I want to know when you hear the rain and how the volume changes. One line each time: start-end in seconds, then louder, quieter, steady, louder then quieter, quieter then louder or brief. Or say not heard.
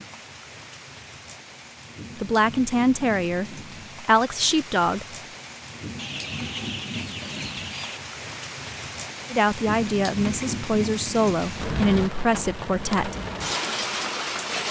0.0-14.6 louder.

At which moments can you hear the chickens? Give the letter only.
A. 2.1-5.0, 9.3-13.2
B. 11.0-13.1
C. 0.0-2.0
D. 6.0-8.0
D.